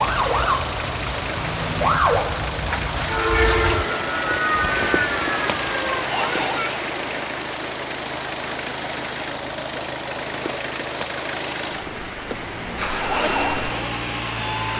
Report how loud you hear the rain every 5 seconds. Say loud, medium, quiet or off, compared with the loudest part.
loud, loud, medium.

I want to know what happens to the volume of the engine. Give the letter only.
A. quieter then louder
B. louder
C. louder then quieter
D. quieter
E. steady
E.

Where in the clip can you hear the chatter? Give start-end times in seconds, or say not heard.
not heard.